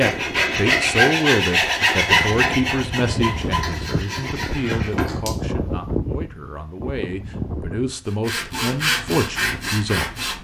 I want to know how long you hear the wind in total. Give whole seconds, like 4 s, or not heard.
8 s.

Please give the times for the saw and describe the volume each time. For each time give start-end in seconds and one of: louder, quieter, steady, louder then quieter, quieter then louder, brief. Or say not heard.
0.0-5.4 quieter
8.1-10.3 brief.